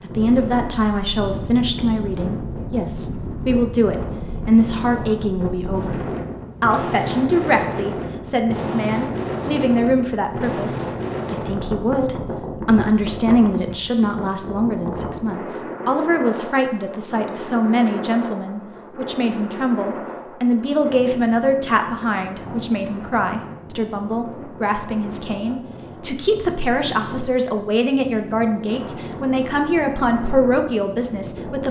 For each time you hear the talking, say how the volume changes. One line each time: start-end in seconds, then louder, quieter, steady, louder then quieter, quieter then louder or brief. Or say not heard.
0.0-31.6 steady.